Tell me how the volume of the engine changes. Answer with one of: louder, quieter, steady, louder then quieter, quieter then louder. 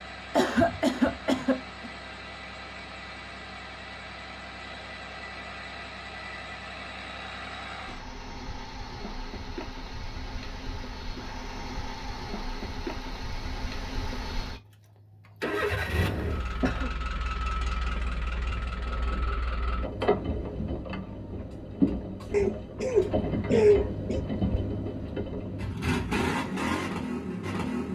louder.